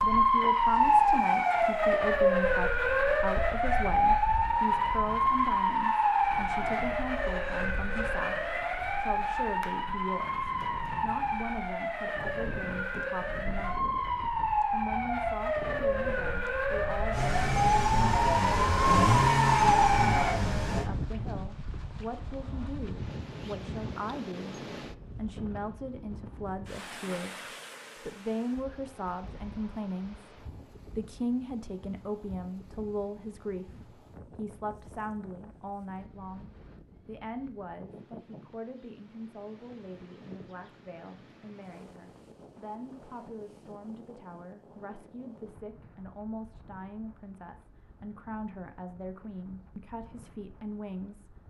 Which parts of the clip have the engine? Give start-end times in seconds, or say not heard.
17.1-20.9.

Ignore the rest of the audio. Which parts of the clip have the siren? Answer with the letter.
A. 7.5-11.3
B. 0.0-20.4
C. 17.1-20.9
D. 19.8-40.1
B.